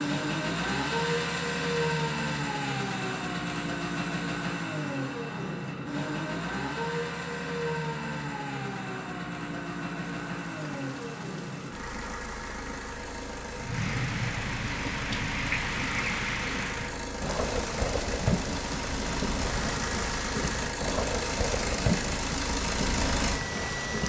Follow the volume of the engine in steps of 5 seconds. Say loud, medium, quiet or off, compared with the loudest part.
loud, loud, medium, medium, loud.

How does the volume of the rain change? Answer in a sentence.
The loudness of the rain goes up.